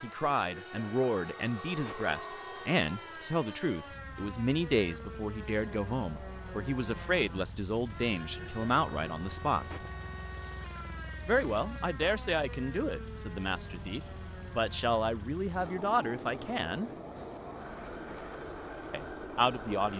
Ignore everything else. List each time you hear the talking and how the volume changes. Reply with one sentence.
You can hear the talking from 0.0 to 9.7 s, at a steady volume; from 11.2 to 16.9 s, getting quieter then louder; and briefly from 18.9 to 19.9 s.